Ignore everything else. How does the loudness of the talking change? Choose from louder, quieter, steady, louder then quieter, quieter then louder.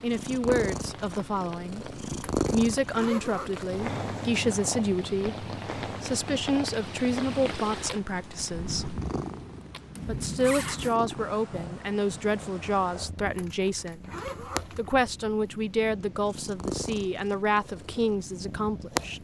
steady.